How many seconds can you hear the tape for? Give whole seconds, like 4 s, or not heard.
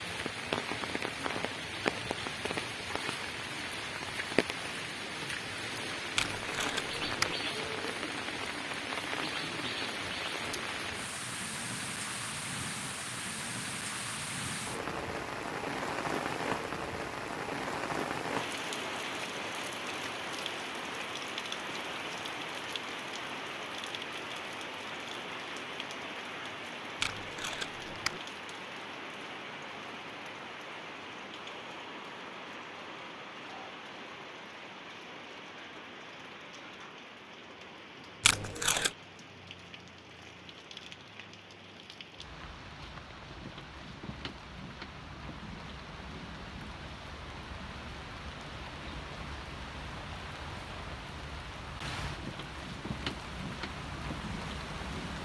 3 s.